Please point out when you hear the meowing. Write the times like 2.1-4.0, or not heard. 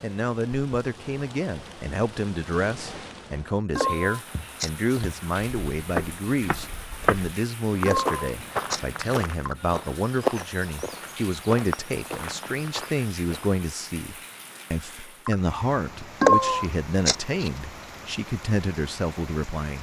3.8-5.0, 7.8-9.2, 16.2-17.5.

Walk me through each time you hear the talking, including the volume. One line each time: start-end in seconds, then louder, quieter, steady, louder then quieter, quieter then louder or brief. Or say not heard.
0.0-19.7 steady.